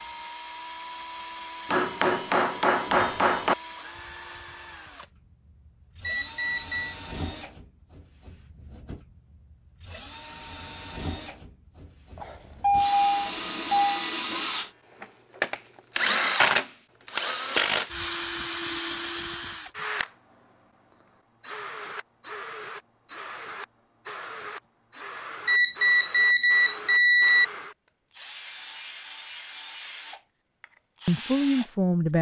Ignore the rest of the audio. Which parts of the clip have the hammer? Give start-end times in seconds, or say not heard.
1.6-3.5.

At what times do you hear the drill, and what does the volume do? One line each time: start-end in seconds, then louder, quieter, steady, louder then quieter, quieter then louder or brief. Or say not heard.
0.0-31.7 louder then quieter.